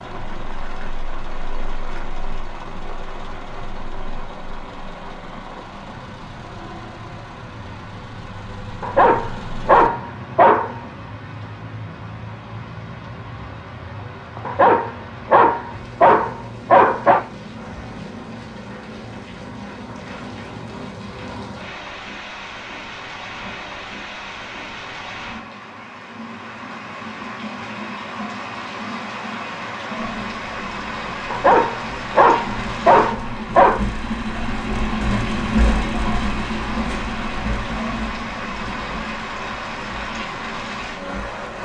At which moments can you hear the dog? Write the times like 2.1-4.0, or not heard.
8.8-10.8, 14.4-17.2, 31.3-33.8.